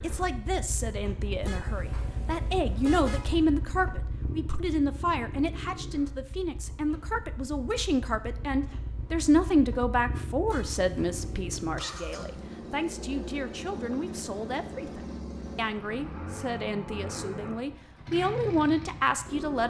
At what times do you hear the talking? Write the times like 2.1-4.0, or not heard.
0.0-19.6.